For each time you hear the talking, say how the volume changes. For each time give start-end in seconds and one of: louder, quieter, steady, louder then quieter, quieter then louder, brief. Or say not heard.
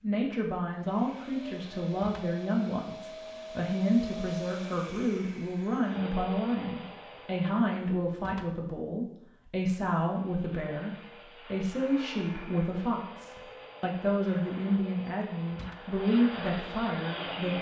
0.0-17.5 steady.